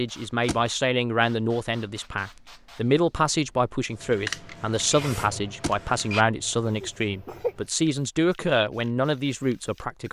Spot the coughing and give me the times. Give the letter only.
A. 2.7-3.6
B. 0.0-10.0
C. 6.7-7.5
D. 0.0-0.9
C.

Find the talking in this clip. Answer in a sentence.
The talking can be heard from 0.0 to 10.0 s.